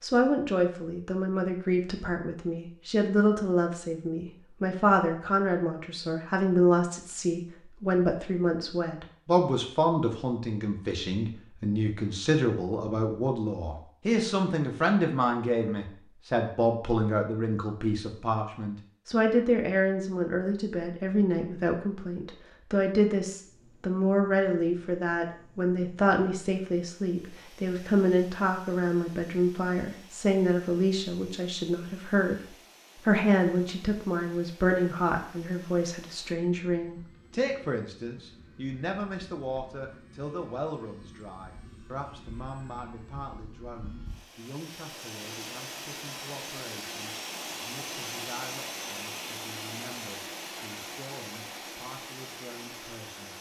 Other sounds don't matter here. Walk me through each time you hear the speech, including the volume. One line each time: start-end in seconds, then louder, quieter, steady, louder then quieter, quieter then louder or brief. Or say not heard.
0.0-32.4 steady
33.0-53.3 quieter.